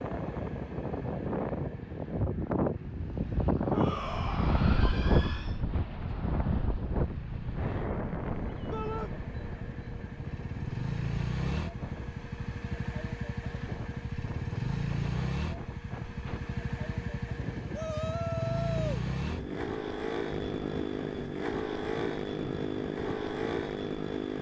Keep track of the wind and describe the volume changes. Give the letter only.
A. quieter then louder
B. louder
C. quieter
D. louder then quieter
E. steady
C.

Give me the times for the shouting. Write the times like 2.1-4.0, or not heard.
3.7-5.5, 8.7-9.1, 17.7-19.1.